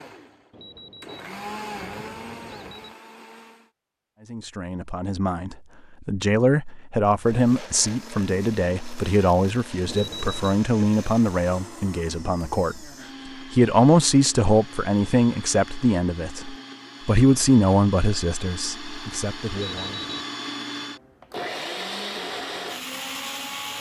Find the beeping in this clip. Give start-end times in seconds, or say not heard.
0.5-3.0, 9.8-10.6, 19.5-20.2.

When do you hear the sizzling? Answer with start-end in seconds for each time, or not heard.
not heard.